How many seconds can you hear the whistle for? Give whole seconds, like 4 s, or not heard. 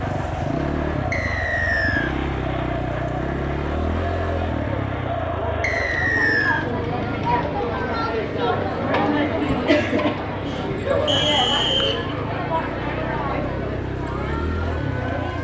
3 s.